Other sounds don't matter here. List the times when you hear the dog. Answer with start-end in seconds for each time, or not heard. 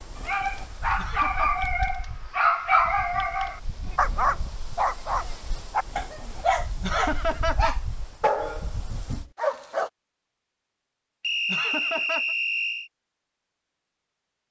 0.1-9.9.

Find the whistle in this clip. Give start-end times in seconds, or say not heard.
11.2-12.9.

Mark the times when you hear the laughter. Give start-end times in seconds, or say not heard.
0.9-1.6, 6.8-7.8, 11.4-12.3.